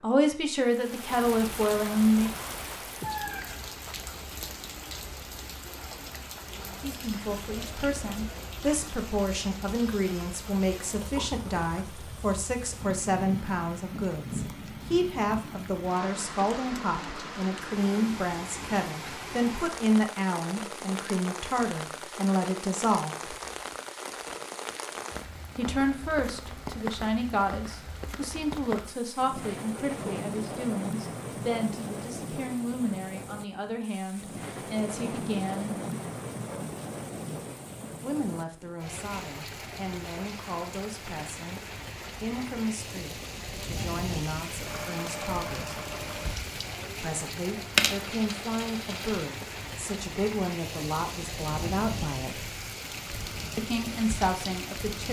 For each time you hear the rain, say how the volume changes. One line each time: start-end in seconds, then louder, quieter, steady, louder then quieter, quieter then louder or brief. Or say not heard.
0.0-55.0 steady.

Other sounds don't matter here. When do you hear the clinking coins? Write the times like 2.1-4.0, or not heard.
47.8-49.2.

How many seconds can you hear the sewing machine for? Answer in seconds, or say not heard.
2 s.